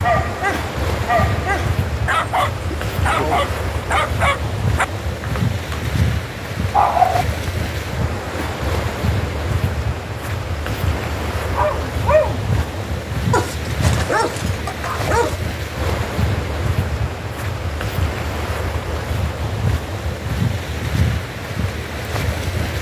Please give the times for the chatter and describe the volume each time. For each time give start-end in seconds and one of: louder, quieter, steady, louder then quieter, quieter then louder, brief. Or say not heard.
not heard.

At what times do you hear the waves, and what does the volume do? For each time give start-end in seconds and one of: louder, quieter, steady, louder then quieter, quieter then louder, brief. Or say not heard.
0.0-22.7 steady.